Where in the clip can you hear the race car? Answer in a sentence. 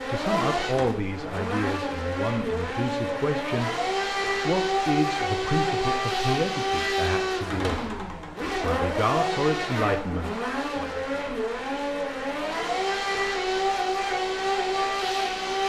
You can hear the race car from 0.0 to 15.6 s.